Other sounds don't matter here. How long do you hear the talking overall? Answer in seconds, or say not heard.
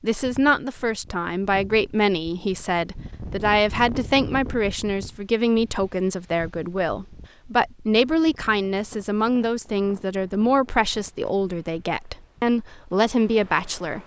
14 s.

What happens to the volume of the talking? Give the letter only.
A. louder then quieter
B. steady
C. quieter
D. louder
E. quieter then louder
B.